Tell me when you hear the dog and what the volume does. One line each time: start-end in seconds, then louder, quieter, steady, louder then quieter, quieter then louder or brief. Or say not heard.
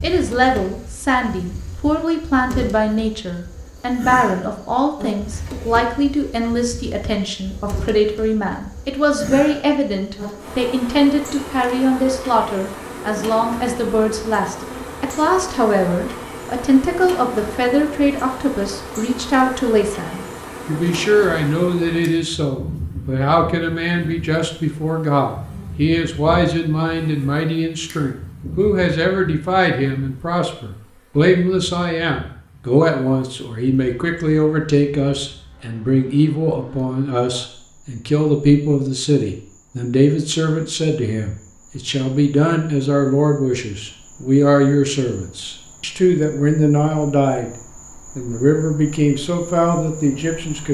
not heard.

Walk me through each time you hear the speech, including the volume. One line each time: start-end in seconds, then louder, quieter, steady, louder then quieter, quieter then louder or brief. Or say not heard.
0.0-47.5 steady
48.1-50.6 brief.